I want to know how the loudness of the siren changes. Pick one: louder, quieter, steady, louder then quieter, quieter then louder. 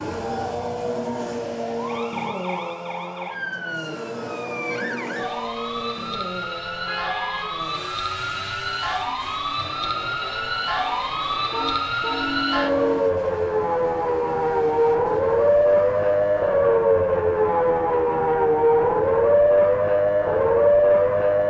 louder.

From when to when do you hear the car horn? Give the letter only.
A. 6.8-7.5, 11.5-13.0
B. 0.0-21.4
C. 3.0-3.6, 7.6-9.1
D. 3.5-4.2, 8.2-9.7
A.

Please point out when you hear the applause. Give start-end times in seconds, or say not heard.
not heard.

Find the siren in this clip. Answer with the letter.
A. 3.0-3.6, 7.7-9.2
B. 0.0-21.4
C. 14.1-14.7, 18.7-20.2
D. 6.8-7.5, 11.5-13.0
B.